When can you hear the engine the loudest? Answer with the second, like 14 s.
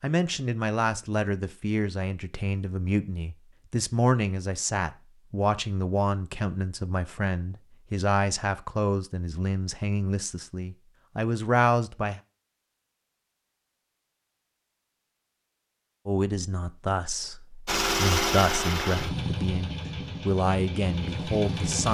18 s.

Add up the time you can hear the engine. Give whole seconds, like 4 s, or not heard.
4 s.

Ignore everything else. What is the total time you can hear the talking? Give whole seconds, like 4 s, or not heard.
18 s.